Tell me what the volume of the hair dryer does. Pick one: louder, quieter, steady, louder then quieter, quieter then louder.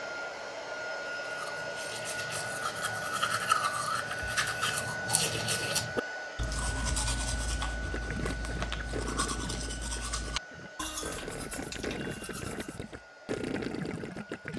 quieter.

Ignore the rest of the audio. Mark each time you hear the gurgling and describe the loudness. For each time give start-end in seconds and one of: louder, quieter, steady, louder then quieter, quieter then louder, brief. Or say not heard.
7.8-14.5 quieter then louder.